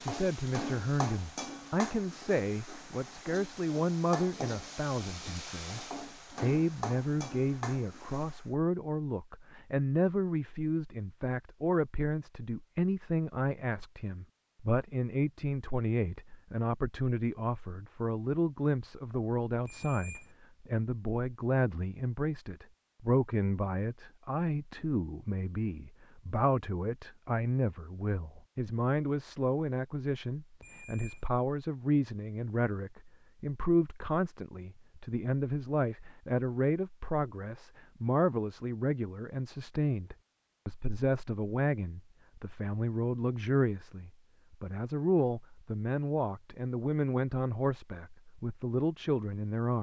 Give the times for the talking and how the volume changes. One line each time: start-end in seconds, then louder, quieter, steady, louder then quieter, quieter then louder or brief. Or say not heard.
0.0-49.7 steady.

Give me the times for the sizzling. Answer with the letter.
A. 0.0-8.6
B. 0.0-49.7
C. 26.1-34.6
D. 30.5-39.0
A.